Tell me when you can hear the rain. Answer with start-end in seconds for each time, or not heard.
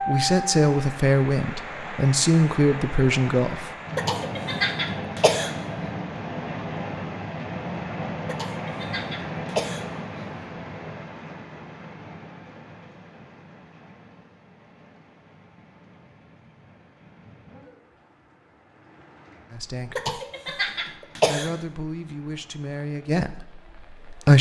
0.0-24.3.